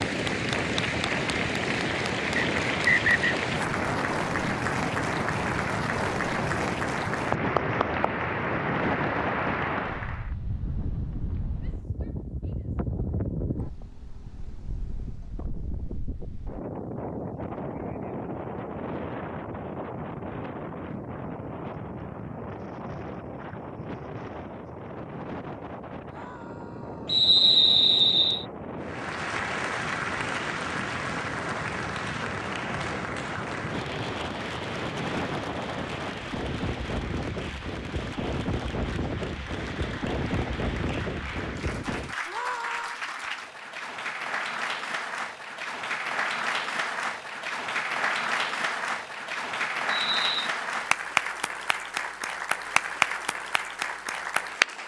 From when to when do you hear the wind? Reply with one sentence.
The wind can be heard from 0.0 to 42.1 s.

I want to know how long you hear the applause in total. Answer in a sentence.
You can hear the applause for 36 seconds altogether.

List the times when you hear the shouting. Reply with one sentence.
The shouting can be heard from 11.6 to 12.7 s, from 26.1 to 27.2 s and from 42.2 to 43.0 s.